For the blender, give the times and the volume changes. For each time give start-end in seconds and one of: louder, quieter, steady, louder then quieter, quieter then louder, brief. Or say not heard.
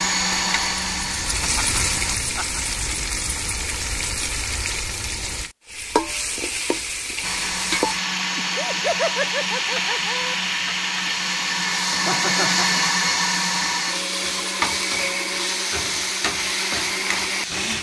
0.0-2.2 brief
7.2-17.7 louder then quieter.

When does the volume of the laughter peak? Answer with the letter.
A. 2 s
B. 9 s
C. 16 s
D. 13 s
B.